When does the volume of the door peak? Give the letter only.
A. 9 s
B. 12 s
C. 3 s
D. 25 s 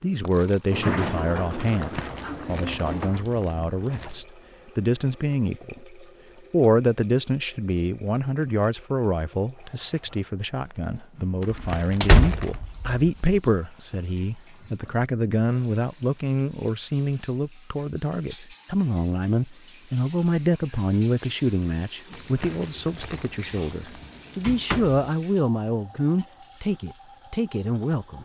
B.